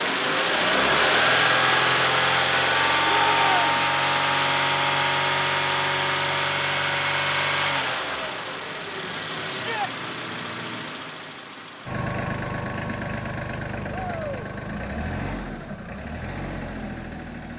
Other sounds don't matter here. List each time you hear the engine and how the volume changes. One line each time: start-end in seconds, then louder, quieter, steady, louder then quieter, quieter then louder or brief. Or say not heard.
0.0-17.5 quieter.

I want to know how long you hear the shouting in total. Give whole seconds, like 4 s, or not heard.
2 s.